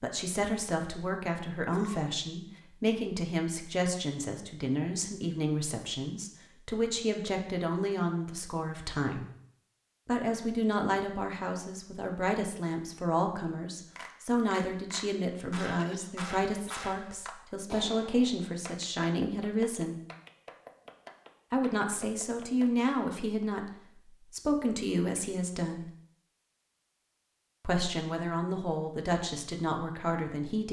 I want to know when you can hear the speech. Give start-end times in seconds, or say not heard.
0.0-9.3, 10.1-19.9, 21.5-25.9, 27.6-30.6.